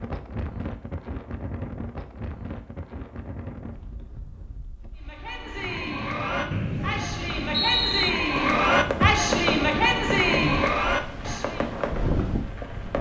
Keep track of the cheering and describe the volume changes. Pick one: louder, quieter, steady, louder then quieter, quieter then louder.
louder.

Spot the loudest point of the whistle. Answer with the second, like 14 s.
8 s.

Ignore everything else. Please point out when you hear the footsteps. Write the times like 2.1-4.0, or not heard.
not heard.